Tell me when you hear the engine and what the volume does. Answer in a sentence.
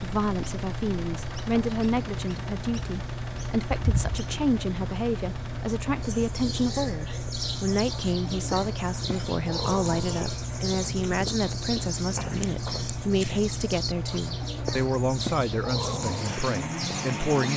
The engine can be heard from 0.0 to 17.5 s, at a steady volume.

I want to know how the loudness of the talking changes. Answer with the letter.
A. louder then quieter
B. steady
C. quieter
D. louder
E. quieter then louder
B.